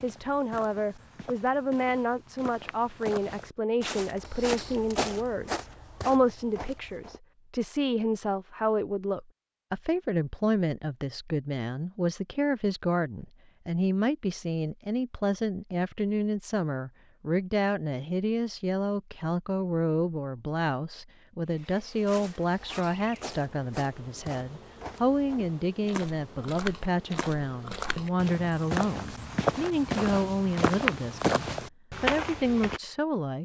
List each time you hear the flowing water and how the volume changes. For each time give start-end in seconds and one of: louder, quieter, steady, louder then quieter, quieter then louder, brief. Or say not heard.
not heard.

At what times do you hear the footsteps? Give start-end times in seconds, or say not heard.
0.0-7.2, 22.1-32.8.